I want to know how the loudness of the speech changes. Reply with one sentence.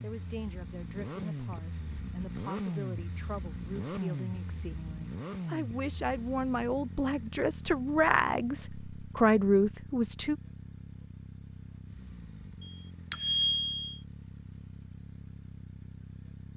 The volume of the speech goes up.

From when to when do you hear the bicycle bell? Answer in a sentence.
The bicycle bell can be heard from 12.6 to 14.0 s.